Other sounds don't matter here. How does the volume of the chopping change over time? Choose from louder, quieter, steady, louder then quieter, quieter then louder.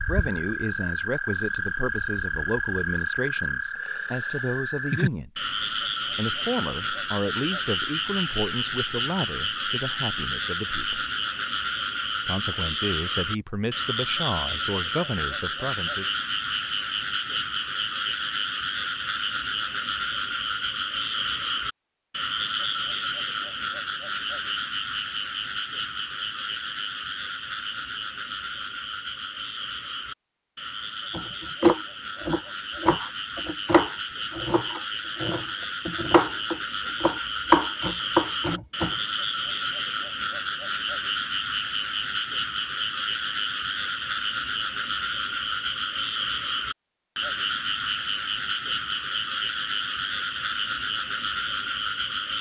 quieter then louder.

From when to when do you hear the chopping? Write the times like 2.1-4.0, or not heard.
31.1-39.0.